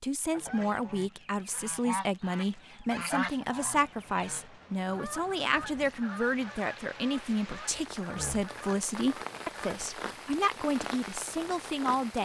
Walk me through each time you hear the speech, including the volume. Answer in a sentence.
The speech can be heard from 0.0 to 12.2 s, at a steady volume.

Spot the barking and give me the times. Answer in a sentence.
You can't hear the barking here.